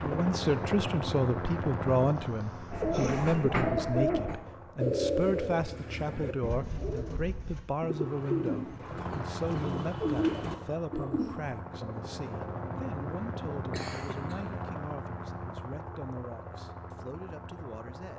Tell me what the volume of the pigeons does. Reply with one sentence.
The volume of the pigeons goes down, then up.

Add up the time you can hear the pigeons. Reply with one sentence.
You can hear the pigeons for 9 seconds altogether.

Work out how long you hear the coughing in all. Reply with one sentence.
The coughing can be heard for 2 seconds in total.